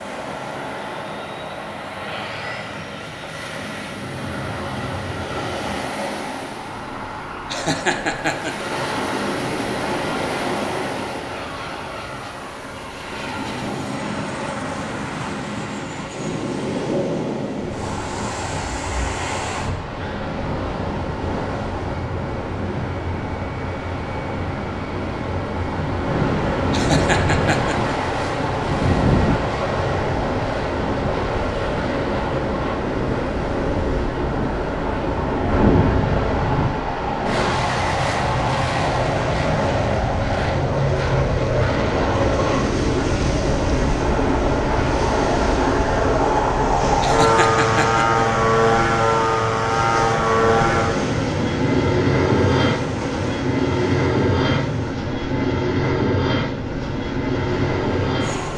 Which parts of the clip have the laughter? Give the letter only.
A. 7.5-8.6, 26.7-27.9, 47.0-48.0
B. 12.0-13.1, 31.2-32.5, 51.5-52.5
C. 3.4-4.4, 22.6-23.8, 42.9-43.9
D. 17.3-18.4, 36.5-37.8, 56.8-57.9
A.